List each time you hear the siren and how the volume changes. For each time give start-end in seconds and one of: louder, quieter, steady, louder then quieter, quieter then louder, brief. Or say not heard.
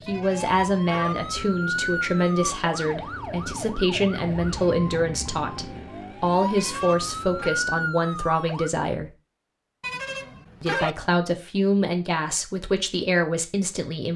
0.0-8.7 quieter then louder.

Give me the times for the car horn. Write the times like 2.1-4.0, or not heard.
0.1-1.1, 6.5-7.6, 9.8-10.9.